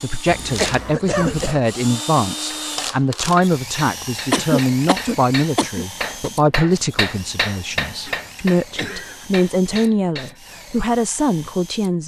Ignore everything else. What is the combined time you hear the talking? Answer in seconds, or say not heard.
12 s.